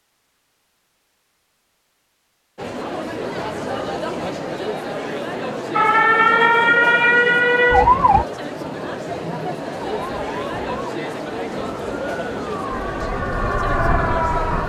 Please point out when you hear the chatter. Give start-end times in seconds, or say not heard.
2.5-14.6.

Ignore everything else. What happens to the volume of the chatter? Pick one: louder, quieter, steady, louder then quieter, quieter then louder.
steady.